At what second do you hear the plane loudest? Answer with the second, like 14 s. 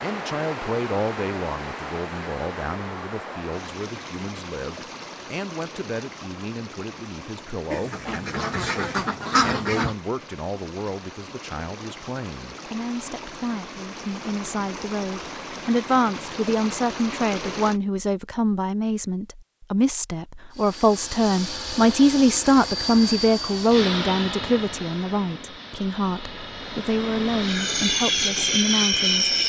29 s.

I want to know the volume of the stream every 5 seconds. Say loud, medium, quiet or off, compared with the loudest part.
loud, medium, medium, loud, off, off.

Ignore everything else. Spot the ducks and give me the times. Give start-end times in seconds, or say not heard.
7.7-9.9.